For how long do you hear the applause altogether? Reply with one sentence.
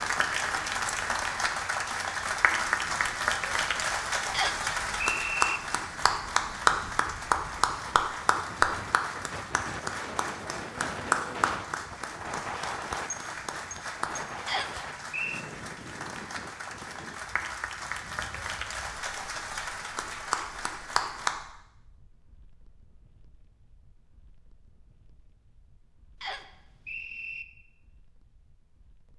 The applause can be heard for 21 seconds in total.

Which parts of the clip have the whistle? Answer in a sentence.
You can hear the whistle from 4.3 to 5.6 s, from 14.4 to 15.4 s and from 26.2 to 27.4 s.